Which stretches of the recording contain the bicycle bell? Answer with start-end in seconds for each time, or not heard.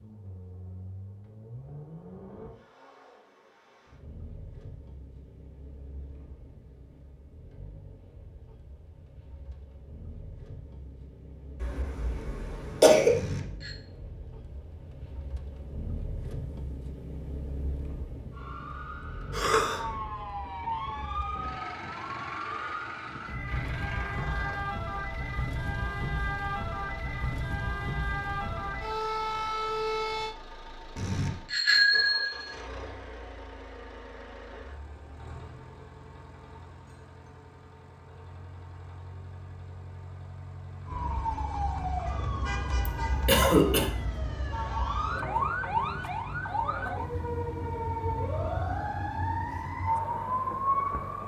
13.1-13.8, 30.9-32.5.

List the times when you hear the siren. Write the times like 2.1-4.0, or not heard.
18.3-30.4, 40.9-51.2.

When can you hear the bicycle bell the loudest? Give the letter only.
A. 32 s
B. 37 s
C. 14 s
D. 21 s
A.